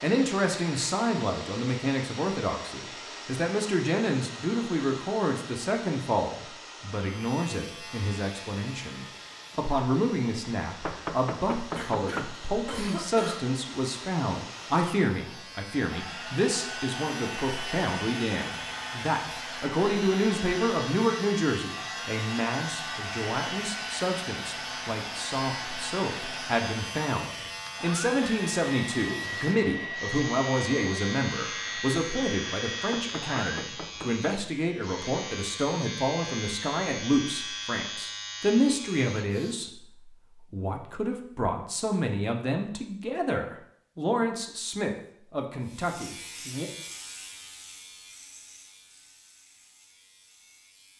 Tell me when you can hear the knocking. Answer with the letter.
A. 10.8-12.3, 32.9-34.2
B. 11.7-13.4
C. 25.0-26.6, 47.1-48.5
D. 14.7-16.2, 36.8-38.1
A.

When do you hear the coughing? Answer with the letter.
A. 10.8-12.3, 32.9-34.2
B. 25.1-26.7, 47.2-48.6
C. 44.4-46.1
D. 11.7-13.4
D.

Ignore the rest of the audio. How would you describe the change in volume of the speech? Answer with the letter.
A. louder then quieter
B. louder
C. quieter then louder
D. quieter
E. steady
E.